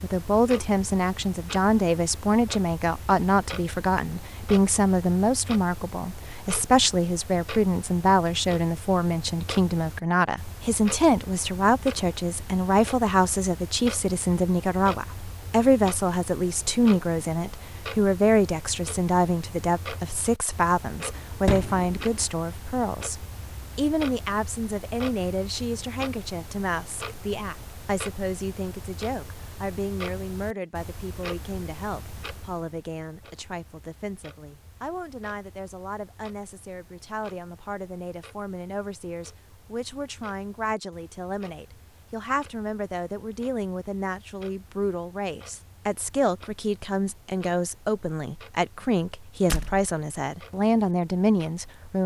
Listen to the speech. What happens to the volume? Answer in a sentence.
The loudness of the speech goes down, then up.